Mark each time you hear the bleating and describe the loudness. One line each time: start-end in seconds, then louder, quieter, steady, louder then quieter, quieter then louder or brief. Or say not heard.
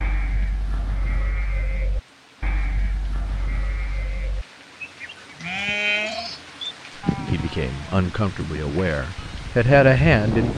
0.0-10.5 louder then quieter.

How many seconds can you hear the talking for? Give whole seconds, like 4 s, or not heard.
3 s.